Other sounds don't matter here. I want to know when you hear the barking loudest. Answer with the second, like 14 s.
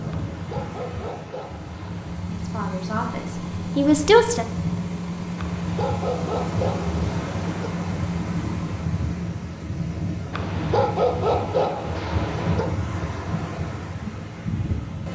11 s.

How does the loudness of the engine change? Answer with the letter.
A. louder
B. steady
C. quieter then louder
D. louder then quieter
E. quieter
B.